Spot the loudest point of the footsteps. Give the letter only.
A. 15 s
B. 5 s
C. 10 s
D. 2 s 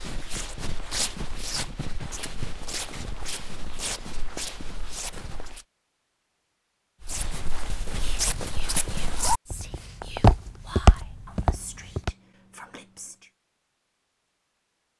C.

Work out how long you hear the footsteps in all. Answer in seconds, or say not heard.
11 s.